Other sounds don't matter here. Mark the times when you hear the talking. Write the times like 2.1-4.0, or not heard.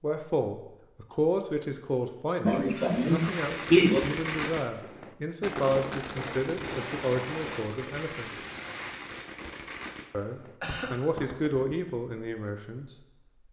0.0-8.3, 10.1-12.9.